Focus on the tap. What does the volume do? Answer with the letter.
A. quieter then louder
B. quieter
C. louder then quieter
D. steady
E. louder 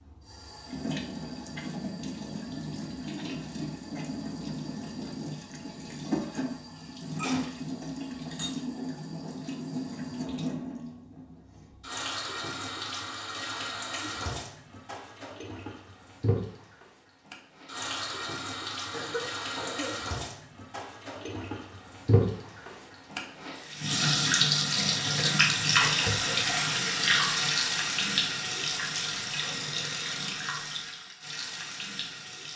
E.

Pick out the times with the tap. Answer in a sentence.
You can hear the tap from 0.0 to 32.5 s.